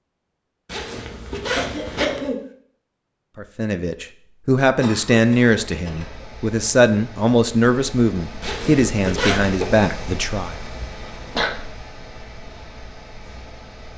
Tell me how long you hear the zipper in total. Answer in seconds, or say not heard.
3 s.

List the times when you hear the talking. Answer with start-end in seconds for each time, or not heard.
3.4-10.6.